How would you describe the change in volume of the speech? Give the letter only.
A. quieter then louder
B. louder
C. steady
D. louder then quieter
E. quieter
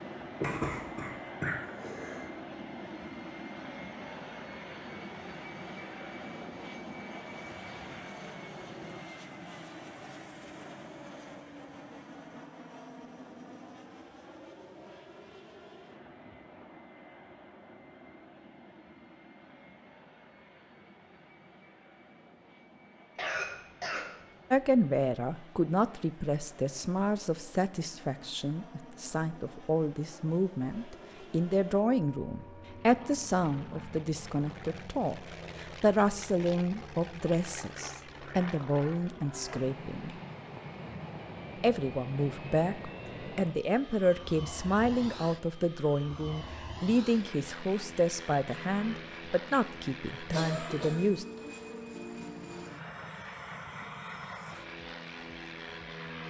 C.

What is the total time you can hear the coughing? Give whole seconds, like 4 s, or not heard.
4 s.